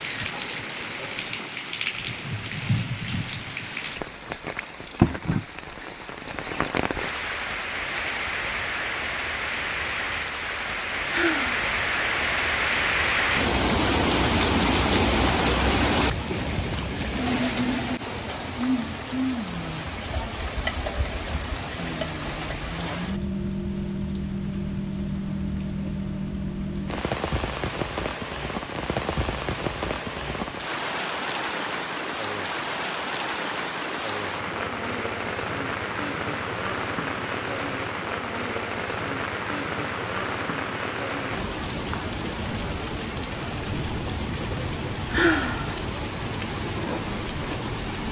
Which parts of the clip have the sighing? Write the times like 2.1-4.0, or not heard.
11.1-11.6, 45.1-45.8.